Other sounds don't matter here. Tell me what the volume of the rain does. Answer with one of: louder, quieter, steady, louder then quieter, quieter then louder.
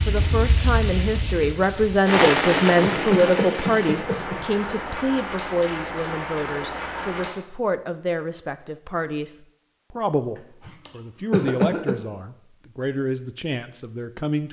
louder then quieter.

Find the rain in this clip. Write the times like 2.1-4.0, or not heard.
0.0-7.3.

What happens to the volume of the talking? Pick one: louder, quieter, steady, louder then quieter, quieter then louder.
quieter.